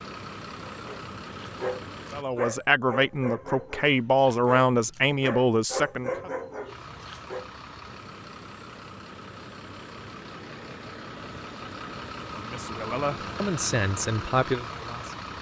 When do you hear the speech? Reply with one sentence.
The speech can be heard from 2.1 to 6.3 s and from 12.3 to 15.2 s.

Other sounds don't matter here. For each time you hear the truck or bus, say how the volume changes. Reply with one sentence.
The truck or bus can be heard briefly from 0.0 to 2.2 s; and from 6.7 to 15.3 s, getting louder.